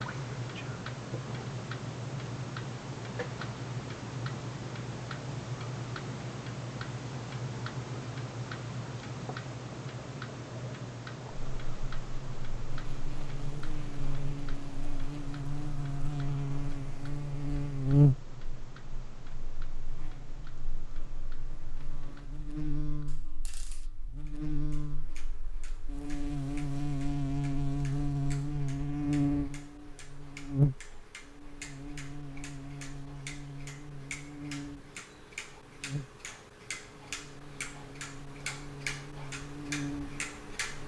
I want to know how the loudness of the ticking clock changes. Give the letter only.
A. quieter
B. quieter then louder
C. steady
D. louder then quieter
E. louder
B.